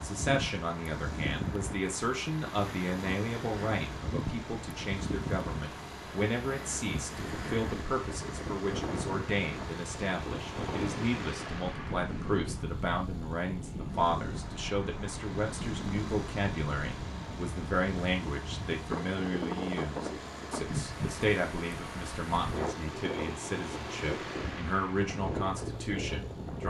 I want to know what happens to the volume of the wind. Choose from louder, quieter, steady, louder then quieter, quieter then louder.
steady.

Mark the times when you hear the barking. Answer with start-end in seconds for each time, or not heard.
not heard.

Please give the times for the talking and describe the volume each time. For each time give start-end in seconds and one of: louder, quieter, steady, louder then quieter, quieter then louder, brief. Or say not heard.
0.0-26.6 steady.